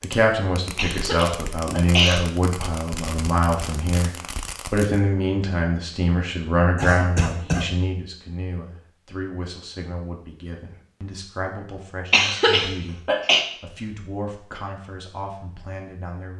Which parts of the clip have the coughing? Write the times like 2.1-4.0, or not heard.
0.8-2.2, 6.8-7.7, 12.1-13.4.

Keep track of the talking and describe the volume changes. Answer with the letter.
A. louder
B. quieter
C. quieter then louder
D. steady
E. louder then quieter
B.